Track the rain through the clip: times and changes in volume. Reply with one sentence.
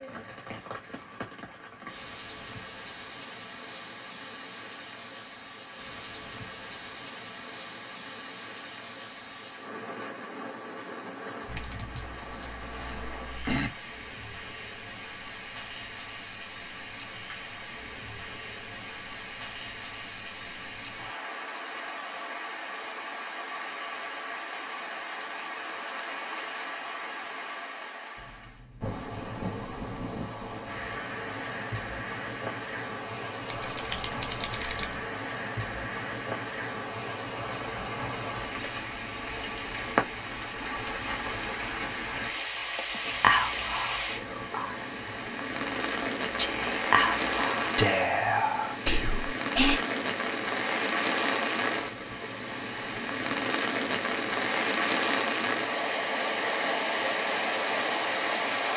You can hear the rain from 0.0 to 58.7 s, getting louder.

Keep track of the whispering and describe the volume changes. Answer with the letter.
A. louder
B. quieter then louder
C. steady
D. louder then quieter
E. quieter
B.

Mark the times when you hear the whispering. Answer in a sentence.
The whispering can be heard from 43.0 to 49.8 s.